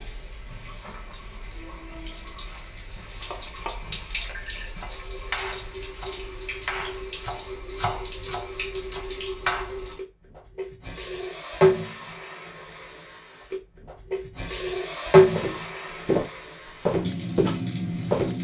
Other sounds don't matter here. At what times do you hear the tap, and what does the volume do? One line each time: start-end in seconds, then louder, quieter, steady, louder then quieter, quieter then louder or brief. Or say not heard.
0.0-18.4 louder.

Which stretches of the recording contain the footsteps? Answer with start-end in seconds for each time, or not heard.
15.3-18.4.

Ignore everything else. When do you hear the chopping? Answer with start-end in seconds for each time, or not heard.
3.2-9.8.